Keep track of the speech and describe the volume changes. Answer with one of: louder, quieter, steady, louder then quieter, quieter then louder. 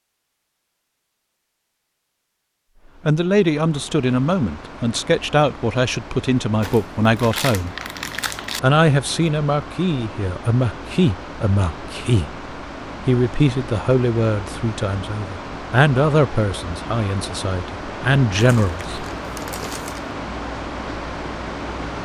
steady.